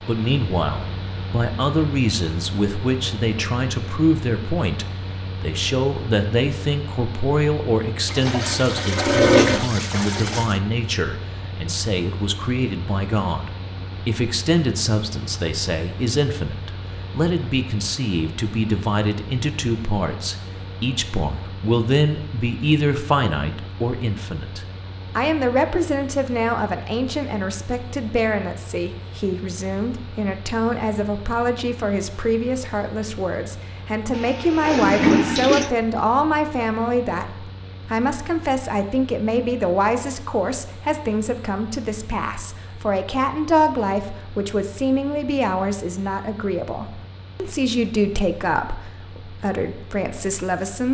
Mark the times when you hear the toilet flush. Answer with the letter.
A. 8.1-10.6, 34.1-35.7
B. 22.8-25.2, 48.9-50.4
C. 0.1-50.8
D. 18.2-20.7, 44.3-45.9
A.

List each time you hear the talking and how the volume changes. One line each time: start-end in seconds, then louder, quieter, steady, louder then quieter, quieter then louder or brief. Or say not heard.
0.1-50.8 steady.